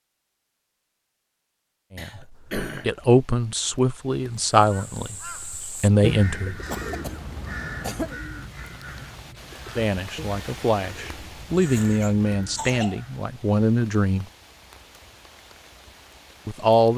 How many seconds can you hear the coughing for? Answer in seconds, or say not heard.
4 s.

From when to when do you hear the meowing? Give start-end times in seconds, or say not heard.
not heard.